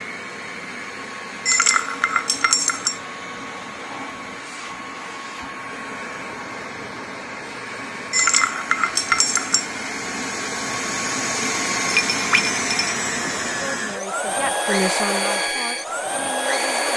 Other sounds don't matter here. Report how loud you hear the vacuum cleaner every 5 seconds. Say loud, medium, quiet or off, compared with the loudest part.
medium, medium, loud, loud.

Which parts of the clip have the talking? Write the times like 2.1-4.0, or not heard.
13.7-16.9.